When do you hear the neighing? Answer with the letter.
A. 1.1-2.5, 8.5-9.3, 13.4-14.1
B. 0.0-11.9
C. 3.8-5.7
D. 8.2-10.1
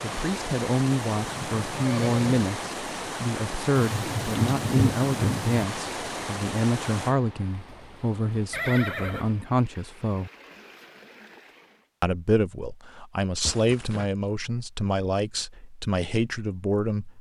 A.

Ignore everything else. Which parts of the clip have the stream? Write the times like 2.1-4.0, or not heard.
0.0-11.9.